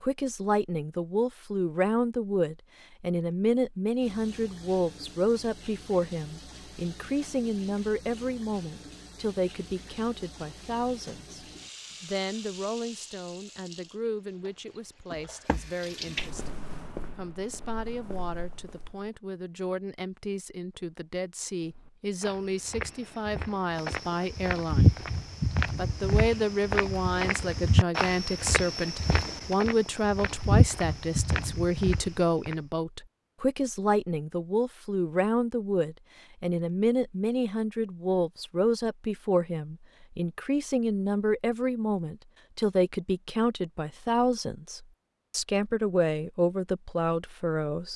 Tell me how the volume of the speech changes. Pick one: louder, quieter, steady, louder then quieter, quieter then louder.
quieter then louder.